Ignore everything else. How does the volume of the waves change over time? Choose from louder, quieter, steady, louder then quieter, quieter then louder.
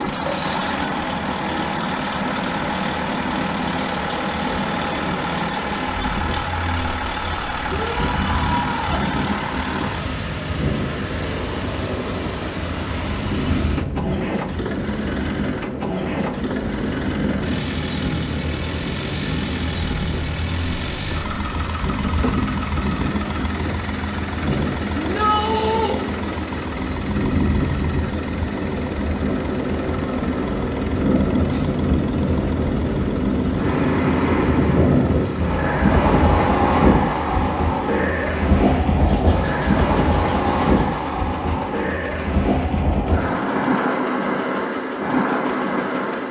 louder.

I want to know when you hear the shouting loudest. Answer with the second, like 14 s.
25 s.